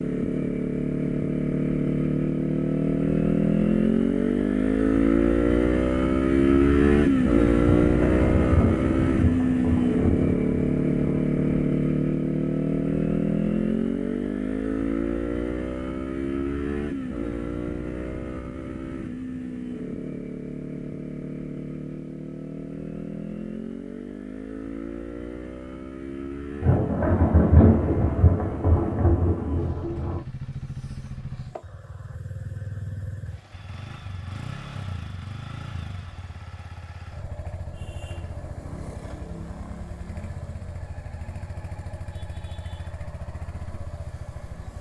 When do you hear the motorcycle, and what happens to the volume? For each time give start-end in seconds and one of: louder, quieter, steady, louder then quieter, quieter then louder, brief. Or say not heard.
0.0-44.7 quieter.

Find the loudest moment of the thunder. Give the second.
28 s.